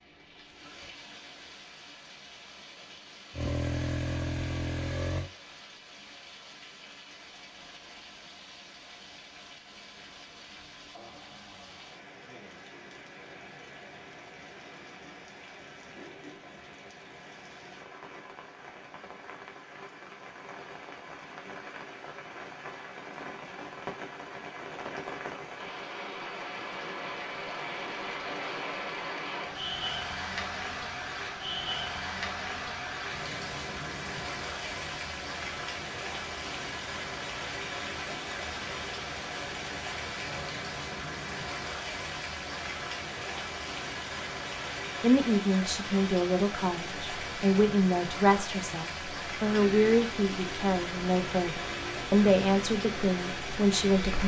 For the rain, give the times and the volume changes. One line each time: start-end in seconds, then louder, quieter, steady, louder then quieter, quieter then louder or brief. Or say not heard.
0.0-54.2 louder.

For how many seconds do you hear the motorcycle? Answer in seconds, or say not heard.
7 s.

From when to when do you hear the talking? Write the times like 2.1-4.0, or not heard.
45.0-54.2.